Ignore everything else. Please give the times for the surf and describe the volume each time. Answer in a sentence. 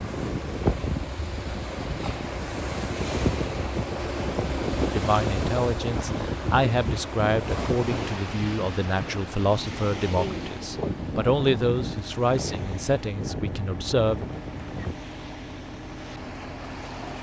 The surf can be heard from 0.0 to 17.1 s, getting quieter.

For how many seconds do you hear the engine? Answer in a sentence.
The engine can be heard for 17 seconds in total.